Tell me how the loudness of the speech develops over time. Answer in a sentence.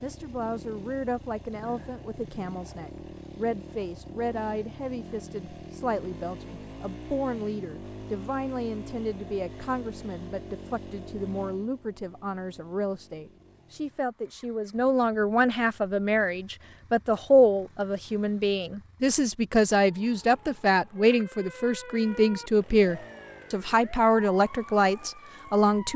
The volume of the speech goes up.